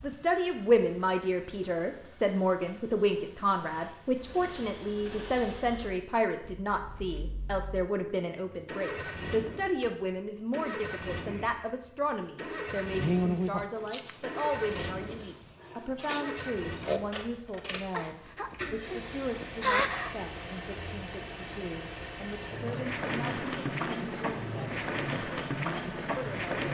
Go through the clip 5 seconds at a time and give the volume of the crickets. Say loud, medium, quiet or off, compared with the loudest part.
quiet, quiet, loud, loud, loud, loud.